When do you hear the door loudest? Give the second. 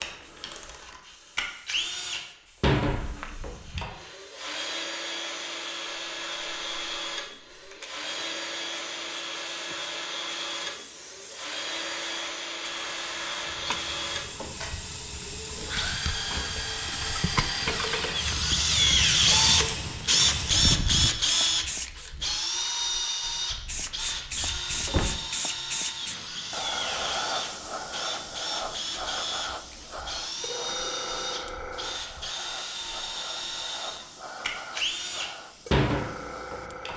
25 s.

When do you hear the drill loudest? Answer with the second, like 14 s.
19 s.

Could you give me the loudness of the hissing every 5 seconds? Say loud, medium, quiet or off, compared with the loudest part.
quiet, quiet, medium, loud, loud, loud, medium, medium.